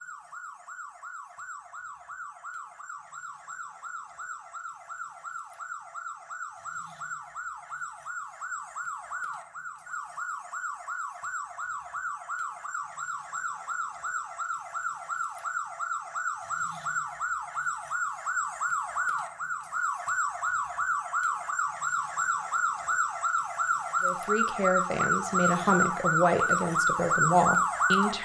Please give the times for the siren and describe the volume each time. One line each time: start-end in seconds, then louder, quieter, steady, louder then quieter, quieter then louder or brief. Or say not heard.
0.0-28.1 louder.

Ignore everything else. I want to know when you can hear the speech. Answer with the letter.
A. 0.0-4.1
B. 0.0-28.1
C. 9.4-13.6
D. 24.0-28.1
D.